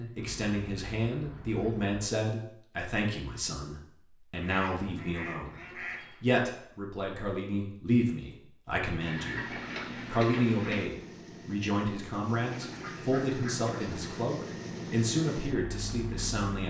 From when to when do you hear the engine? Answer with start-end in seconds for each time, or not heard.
9.4-16.6.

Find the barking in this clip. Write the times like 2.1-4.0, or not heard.
not heard.